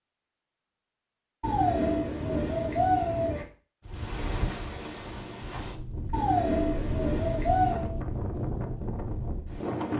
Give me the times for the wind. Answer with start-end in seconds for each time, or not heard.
3.9-9.9.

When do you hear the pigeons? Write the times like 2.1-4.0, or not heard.
1.4-3.5, 6.1-8.0.